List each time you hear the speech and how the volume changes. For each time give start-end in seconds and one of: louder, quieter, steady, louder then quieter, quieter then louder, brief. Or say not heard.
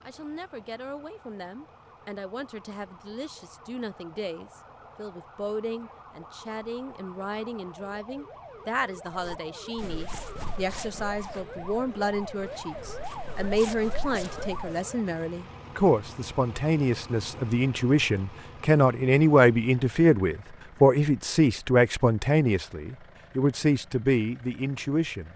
0.0-25.3 louder.